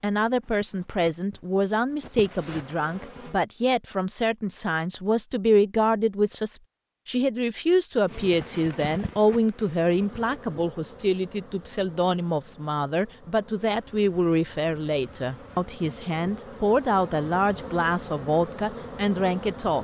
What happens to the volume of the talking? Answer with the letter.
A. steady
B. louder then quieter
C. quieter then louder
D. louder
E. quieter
A.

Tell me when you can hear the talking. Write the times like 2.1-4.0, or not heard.
0.0-19.8.